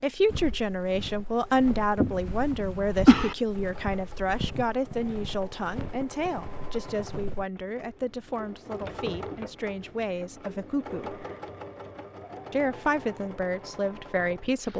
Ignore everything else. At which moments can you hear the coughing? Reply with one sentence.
The coughing can be heard from 2.0 to 3.4 s.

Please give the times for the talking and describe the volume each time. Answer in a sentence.
The talking can be heard from 0.0 to 11.2 s, getting quieter; and briefly from 12.5 to 14.7 s.